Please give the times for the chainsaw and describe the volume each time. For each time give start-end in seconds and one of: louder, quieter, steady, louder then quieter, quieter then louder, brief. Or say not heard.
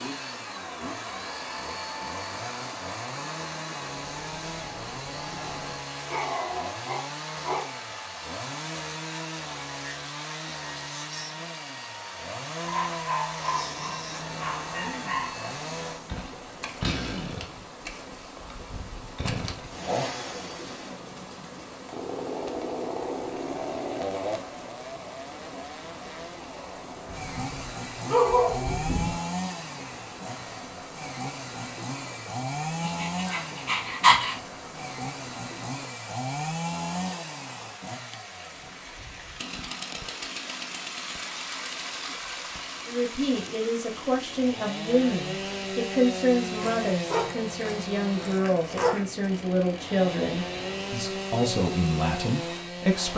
0.0-53.1 steady.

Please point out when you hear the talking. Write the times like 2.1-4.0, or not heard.
42.9-53.1.